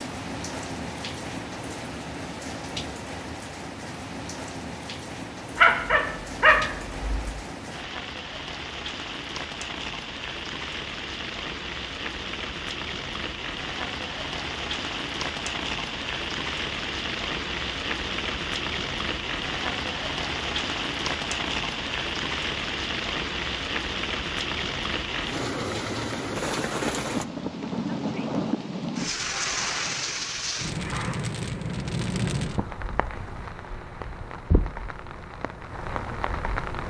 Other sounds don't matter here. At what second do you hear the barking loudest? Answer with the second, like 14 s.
6 s.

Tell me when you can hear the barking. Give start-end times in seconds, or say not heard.
5.5-7.3.